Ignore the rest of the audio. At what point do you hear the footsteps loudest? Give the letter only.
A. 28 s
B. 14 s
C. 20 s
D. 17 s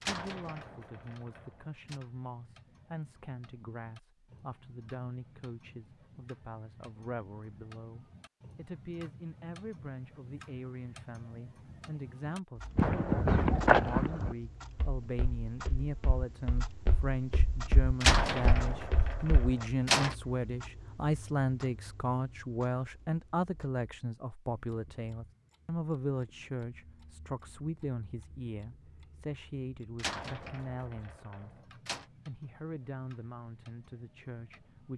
B.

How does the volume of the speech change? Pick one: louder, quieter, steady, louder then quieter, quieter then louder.
louder then quieter.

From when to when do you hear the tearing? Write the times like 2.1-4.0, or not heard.
not heard.